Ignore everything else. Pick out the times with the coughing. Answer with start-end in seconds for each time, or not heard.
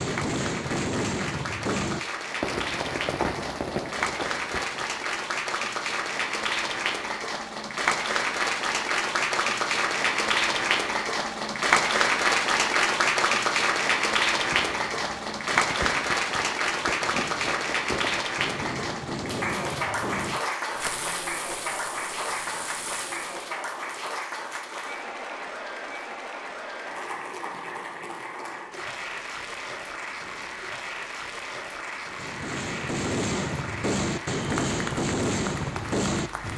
not heard.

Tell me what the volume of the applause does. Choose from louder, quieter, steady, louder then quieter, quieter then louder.
louder then quieter.